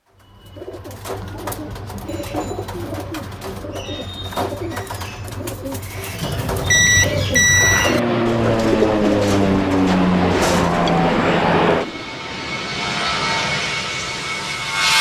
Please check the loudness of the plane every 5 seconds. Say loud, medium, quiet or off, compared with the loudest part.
off, loud, loud.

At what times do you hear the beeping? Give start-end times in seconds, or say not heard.
6.2-8.0.